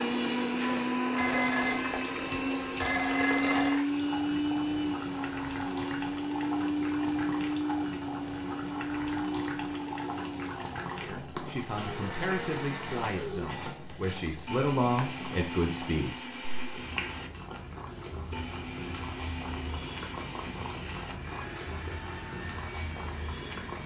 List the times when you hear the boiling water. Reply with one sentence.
You can hear the boiling water from 0.0 to 23.8 s.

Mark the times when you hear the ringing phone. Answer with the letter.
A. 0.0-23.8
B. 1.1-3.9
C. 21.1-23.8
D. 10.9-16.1
B.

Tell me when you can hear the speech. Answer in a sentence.
The speech can be heard from 10.9 to 16.1 s.